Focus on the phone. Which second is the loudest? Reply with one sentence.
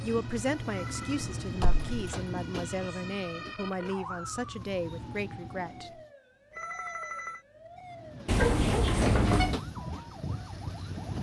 The volume of the phone peaks at 7 seconds.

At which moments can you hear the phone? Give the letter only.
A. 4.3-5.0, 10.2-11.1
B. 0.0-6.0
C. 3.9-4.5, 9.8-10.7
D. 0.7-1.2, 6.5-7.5
D.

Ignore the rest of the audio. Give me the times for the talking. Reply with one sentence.
You can hear the talking from 0.0 to 6.0 s.